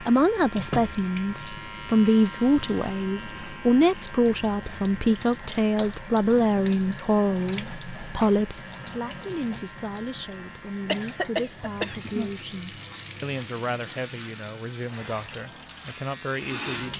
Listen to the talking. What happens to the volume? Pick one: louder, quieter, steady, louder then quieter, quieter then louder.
quieter.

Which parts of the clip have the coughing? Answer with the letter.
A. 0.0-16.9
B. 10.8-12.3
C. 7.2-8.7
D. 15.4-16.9
B.